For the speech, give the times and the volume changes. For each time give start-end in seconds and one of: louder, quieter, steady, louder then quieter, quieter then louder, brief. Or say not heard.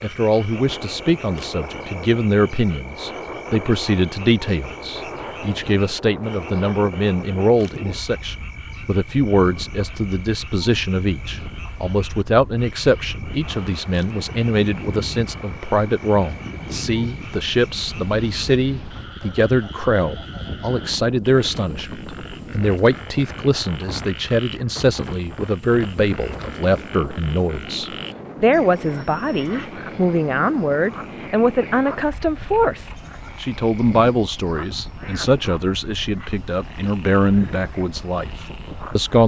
0.0-39.2 steady.